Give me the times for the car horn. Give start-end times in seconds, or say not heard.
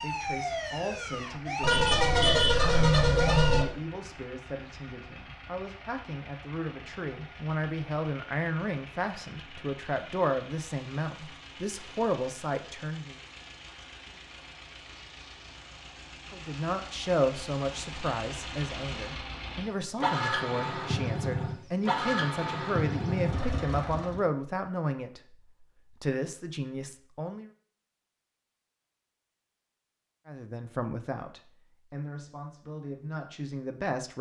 1.6-3.6.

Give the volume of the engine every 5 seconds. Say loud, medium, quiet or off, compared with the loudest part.
quiet, quiet, quiet, medium, loud, off, off.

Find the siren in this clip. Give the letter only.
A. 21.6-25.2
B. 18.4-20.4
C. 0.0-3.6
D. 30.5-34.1
C.